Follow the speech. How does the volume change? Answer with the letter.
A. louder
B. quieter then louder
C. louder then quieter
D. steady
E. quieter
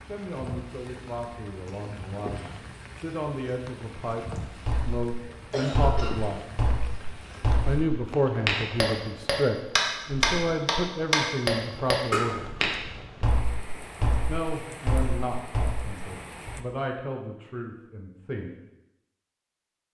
C.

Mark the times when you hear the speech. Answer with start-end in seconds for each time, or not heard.
0.1-6.4, 7.7-12.4, 14.2-18.5.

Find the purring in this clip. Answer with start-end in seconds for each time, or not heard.
not heard.